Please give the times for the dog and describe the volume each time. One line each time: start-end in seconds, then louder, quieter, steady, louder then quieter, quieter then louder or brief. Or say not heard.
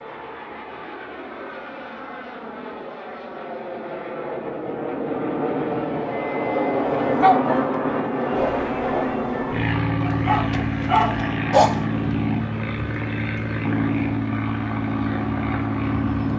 7.2-11.8 quieter then louder.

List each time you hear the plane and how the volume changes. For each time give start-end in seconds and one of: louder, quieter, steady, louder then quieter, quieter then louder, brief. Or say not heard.
0.0-16.3 louder.